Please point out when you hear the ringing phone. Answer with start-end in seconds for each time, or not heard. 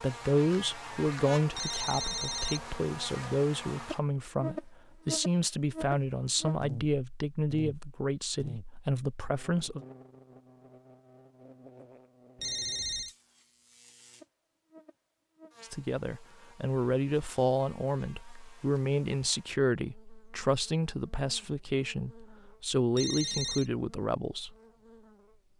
1.5-2.7, 12.3-13.2, 22.9-23.7.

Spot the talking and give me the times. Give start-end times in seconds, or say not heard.
0.0-9.8, 15.6-24.5.